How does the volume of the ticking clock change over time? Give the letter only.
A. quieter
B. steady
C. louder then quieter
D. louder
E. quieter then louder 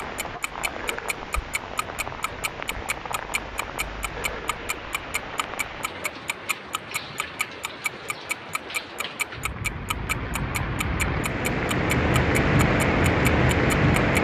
D.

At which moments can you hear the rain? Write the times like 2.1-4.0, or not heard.
0.0-14.1.